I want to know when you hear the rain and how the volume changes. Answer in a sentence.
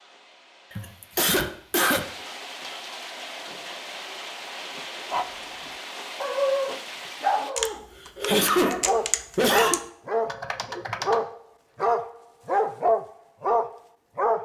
You can hear the rain from 0.0 to 7.5 s, getting louder.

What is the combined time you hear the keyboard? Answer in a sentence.
You can hear the keyboard for 4 seconds altogether.